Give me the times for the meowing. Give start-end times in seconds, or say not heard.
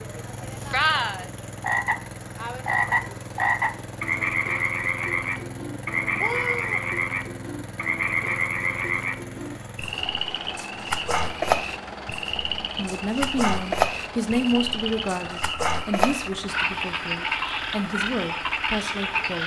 6.2-6.8.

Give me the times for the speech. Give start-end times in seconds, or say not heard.
12.8-19.4.